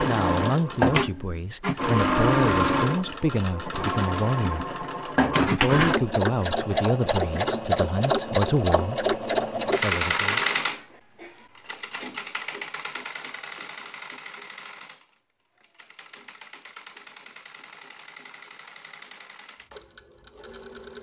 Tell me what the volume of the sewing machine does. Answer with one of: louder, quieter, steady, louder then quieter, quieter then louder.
quieter.